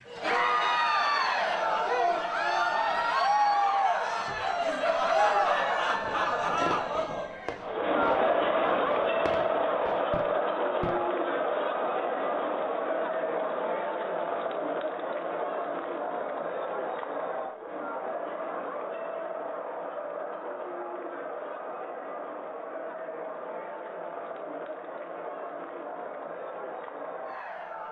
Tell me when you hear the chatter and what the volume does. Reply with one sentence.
The chatter can be heard from 0.0 to 27.8 s, getting quieter.